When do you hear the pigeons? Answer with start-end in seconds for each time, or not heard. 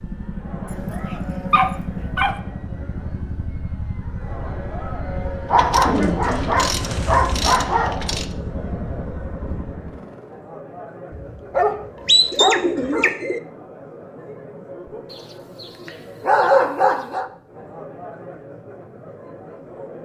5.8-7.7, 12.3-13.4.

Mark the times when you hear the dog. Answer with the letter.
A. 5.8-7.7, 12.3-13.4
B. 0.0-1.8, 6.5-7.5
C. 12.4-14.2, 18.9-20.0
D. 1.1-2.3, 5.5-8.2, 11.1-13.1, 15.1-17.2
D.